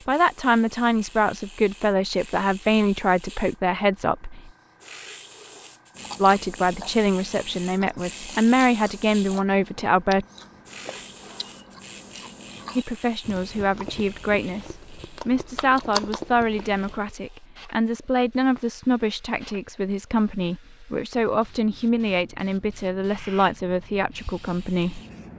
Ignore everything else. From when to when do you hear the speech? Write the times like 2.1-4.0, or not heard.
0.1-4.5, 6.2-10.2, 12.8-25.0.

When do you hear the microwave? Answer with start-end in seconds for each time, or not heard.
not heard.